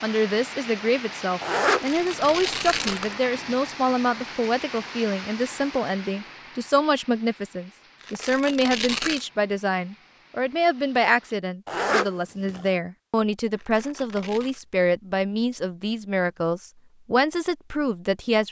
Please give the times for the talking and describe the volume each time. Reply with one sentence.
The talking can be heard from 0.0 to 18.4 s, at a steady volume.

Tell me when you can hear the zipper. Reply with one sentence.
You can hear the zipper from 1.4 to 3.1 s and from 11.7 to 12.7 s.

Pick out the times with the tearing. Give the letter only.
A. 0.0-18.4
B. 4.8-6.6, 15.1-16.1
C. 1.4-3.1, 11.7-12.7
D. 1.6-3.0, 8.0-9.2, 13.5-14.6
D.